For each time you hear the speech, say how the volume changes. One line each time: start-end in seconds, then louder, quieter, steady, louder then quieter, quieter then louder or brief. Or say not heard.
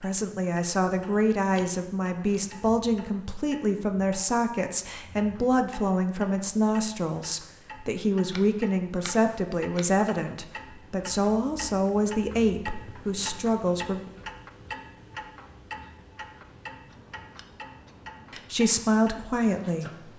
0.0-14.0 steady
18.3-19.9 brief.